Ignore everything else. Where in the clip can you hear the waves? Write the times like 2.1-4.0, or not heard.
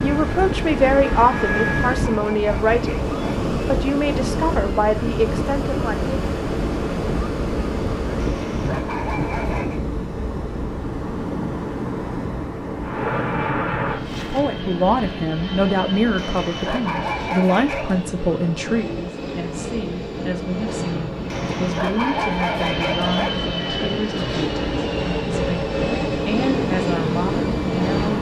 0.0-28.1.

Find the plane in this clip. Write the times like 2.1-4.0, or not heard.
0.0-2.0, 12.8-28.1.